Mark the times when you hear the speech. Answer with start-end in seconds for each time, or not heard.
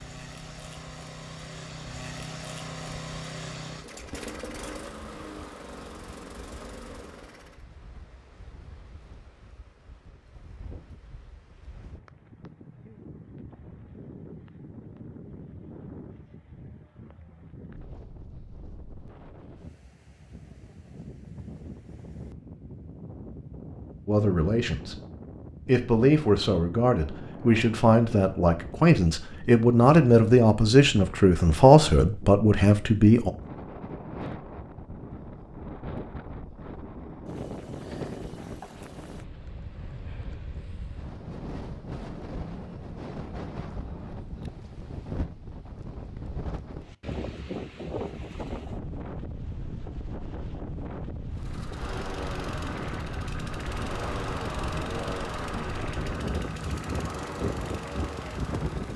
24.1-25.0, 25.6-33.3.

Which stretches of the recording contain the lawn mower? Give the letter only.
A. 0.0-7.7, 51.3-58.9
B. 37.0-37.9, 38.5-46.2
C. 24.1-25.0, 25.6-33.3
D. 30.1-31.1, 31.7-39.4
A.